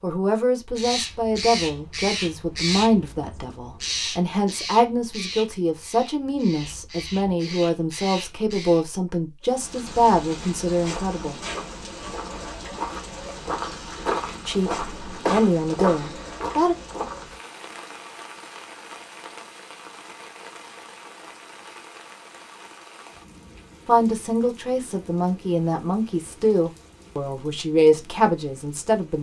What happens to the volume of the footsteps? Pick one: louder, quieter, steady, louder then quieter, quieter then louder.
louder.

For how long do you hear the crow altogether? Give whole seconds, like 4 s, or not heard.
8 s.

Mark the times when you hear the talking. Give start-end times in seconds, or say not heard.
0.0-11.4, 14.4-16.8, 23.9-29.1.